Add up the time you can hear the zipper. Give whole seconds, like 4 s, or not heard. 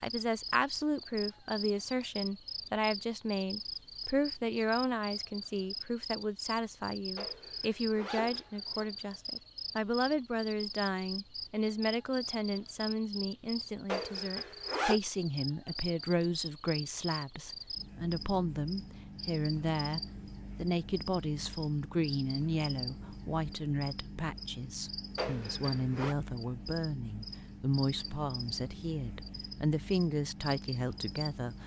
4 s.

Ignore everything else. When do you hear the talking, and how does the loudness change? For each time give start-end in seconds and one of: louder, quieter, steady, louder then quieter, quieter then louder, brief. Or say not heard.
0.0-31.6 steady.